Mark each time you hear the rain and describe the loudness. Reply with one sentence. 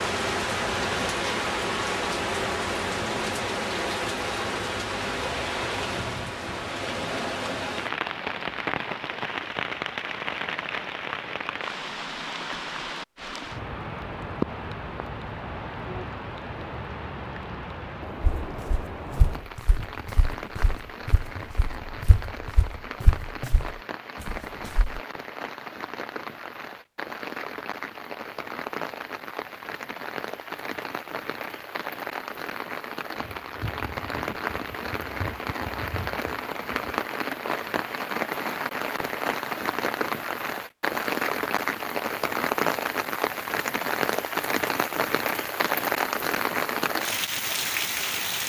The rain can be heard from 0.0 to 48.4 s, getting quieter then louder.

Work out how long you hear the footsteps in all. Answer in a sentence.
You can hear the footsteps for 7 seconds altogether.